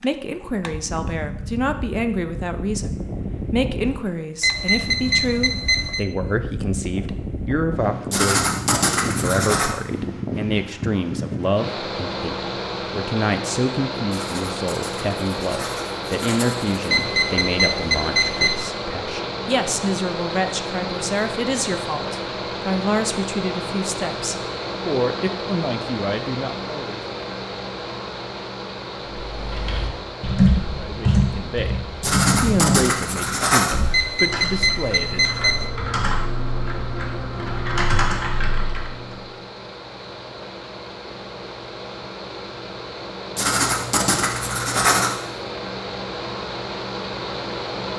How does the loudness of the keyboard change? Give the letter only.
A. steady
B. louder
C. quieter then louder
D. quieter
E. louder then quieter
C.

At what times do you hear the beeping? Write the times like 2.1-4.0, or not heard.
4.4-6.0, 16.9-18.6, 33.9-35.7.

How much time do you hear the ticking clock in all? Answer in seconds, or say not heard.
not heard.